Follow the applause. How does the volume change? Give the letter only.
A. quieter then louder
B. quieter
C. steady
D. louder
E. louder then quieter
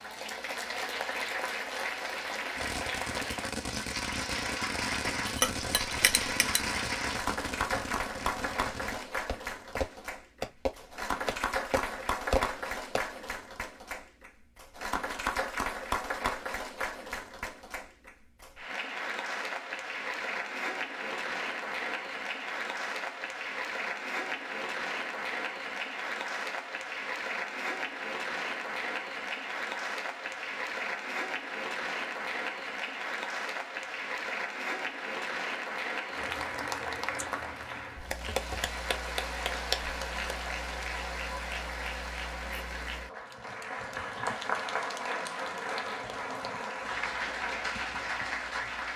C.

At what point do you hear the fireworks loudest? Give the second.
12 s.